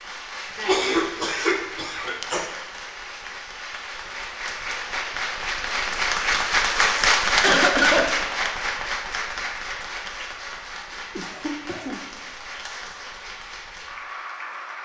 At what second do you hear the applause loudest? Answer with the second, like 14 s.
7 s.